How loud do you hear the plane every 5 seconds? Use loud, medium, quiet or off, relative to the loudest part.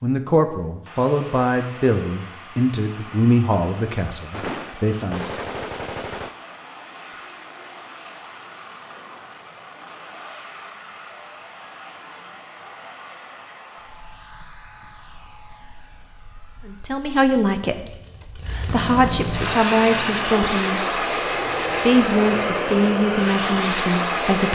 quiet, quiet, quiet, medium, loud.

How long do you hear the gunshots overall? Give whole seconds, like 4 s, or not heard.
2 s.